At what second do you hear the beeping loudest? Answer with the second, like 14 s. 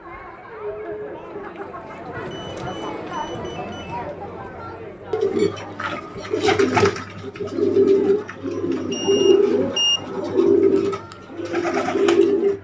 10 s.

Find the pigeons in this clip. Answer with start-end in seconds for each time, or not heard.
5.1-12.5.